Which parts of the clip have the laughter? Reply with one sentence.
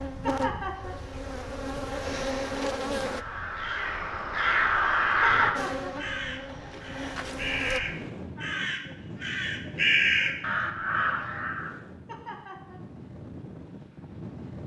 The laughter can be heard from 0.2 to 0.9 s, from 5.2 to 6.0 s and from 12.1 to 12.8 s.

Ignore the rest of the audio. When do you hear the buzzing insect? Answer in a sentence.
You can hear the buzzing insect from 0.0 to 3.2 s and from 5.5 to 7.8 s.